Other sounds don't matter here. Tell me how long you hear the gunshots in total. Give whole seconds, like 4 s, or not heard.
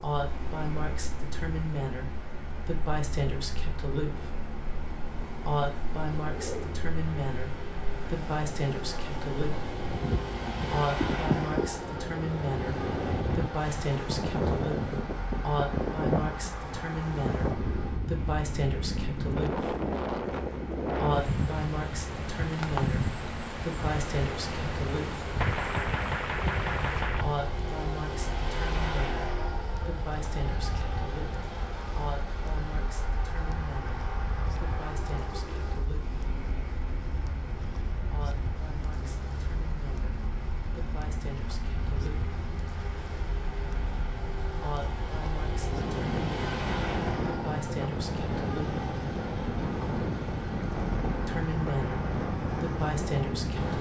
2 s.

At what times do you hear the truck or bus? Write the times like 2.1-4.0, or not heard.
0.0-53.7.